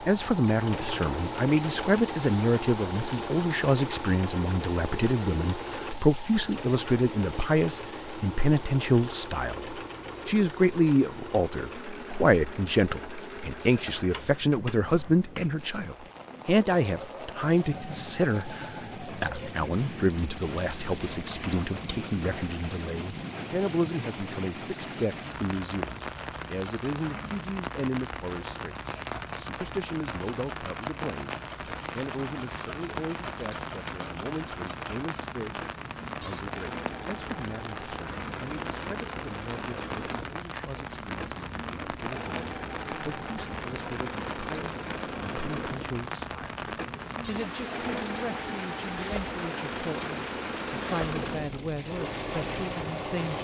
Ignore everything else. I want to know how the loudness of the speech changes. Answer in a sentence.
The volume of the speech goes down.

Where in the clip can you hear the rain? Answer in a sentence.
The rain can be heard from 0.0 to 53.3 s.